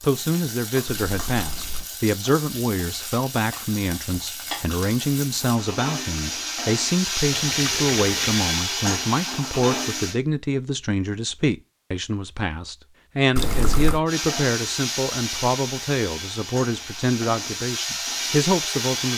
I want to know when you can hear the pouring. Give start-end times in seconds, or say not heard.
0.8-1.9, 7.3-8.5, 13.3-14.0.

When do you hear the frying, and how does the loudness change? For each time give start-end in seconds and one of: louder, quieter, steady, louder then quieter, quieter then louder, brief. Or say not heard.
0.0-10.2 louder
14.1-19.1 quieter then louder.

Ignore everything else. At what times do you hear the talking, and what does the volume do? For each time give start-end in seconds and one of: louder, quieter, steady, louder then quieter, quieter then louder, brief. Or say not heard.
0.0-19.1 steady.